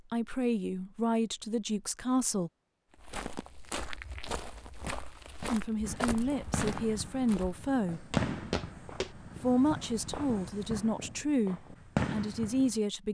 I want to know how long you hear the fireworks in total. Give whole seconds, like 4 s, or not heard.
7 s.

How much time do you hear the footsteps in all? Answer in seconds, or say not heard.
6 s.